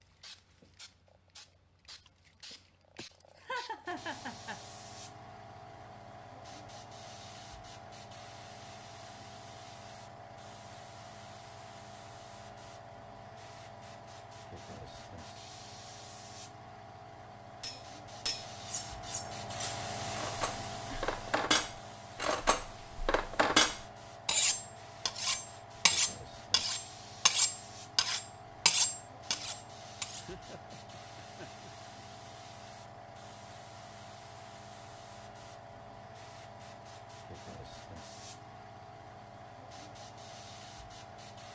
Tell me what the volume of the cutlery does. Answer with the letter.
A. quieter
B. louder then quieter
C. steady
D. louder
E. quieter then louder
D.